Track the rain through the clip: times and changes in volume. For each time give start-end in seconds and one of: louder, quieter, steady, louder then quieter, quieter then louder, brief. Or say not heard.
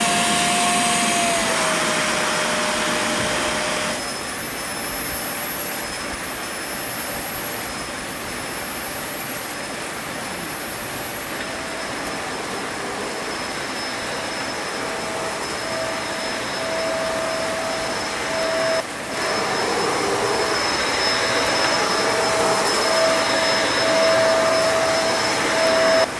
0.0-26.1 steady.